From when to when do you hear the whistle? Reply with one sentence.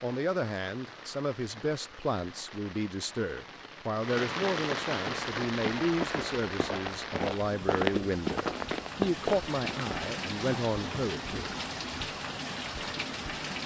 You can't hear the whistle here.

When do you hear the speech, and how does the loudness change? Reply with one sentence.
You can hear the speech from 0.0 to 11.6 s, at a steady volume.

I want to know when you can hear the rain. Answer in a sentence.
You can hear the rain from 0.0 to 13.6 s.